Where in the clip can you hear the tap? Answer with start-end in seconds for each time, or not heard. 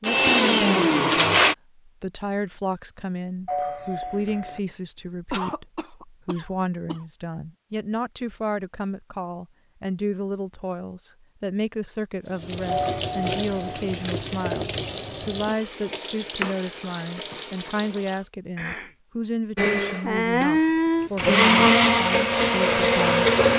12.2-18.2.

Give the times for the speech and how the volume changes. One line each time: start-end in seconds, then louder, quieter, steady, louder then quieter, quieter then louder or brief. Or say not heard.
0.0-23.2 steady.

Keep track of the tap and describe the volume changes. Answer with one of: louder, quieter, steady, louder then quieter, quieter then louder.
steady.